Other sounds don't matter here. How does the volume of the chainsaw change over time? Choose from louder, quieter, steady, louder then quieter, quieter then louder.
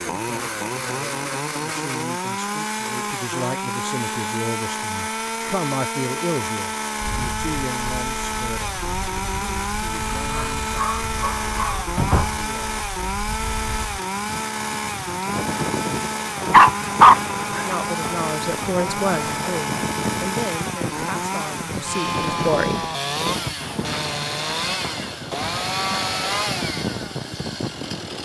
steady.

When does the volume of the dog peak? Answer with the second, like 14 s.
17 s.